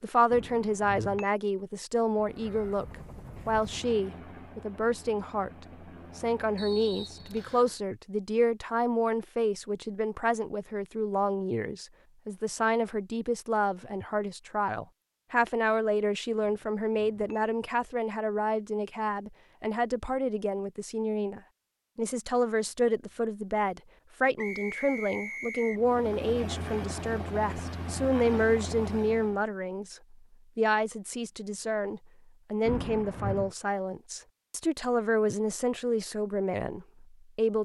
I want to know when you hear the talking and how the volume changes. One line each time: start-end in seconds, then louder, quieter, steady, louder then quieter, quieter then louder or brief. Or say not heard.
0.0-37.6 steady.